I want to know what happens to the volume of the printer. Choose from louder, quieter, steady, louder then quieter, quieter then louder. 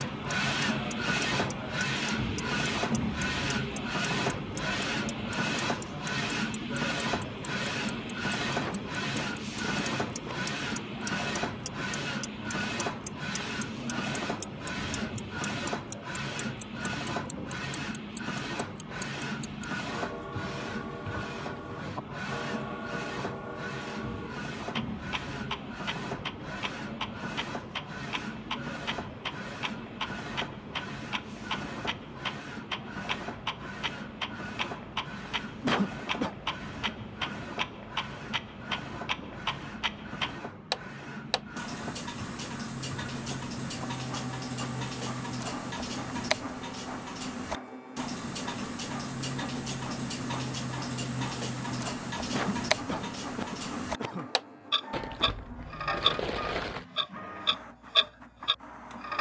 quieter.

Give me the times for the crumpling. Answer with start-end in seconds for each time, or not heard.
54.9-56.9.